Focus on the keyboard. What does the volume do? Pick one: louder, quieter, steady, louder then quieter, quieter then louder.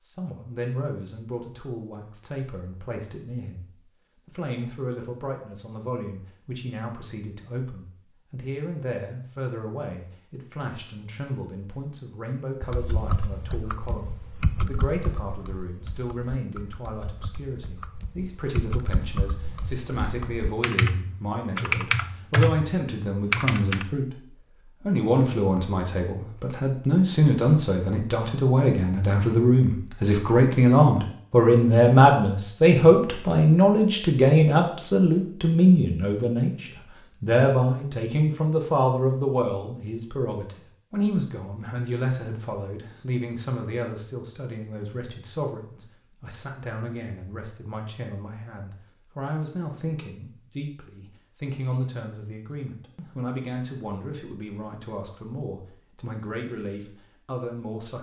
quieter then louder.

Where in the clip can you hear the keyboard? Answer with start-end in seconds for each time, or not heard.
12.6-23.9.